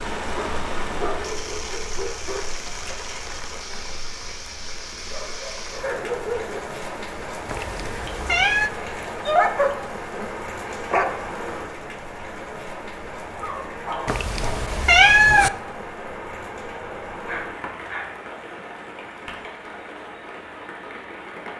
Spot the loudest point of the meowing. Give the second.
15 s.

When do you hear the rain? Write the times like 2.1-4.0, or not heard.
0.0-21.5.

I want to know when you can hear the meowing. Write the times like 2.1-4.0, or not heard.
7.5-8.7, 14.1-15.5.